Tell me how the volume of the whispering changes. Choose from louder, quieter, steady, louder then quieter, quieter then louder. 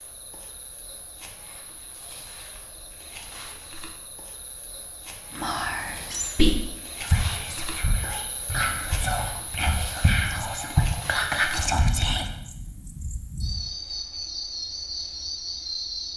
quieter then louder.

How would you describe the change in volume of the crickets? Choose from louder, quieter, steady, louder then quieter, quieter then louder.
louder.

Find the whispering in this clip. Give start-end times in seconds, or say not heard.
5.3-12.2.